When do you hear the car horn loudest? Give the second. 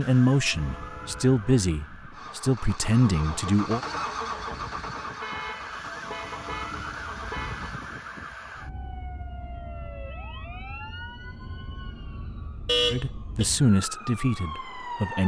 13 s.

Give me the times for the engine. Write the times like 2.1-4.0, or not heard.
2.1-7.8.